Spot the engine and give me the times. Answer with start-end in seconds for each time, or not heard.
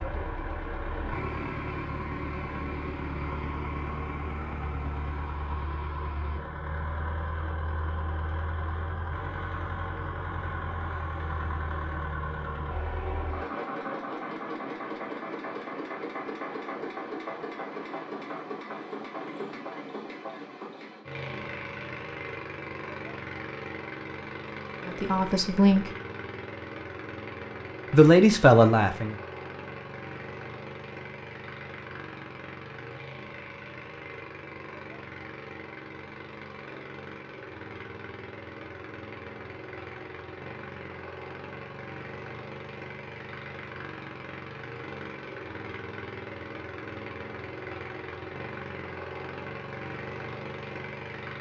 0.0-51.3.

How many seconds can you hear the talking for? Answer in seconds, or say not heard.
2 s.